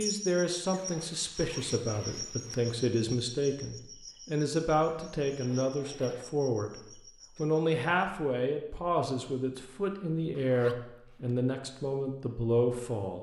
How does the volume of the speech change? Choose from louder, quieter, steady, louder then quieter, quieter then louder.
steady.